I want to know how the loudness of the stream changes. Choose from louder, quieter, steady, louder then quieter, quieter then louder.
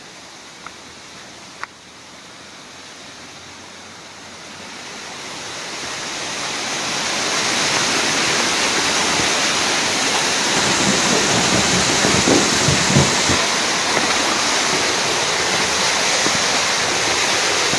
louder.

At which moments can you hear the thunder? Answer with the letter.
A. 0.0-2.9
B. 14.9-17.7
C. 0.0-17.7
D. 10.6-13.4
D.